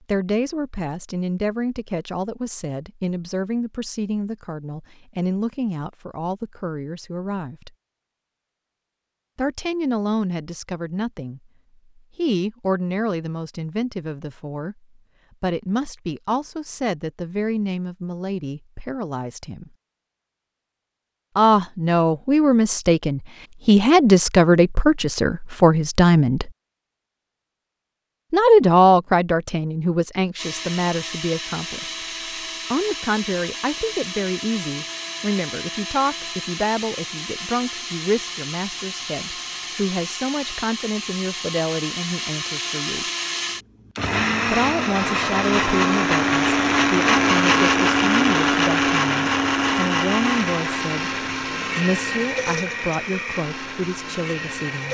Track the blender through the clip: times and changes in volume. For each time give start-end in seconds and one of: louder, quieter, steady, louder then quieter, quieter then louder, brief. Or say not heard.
30.4-54.9 louder then quieter.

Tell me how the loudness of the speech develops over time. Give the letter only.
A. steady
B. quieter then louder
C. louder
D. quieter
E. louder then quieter
E.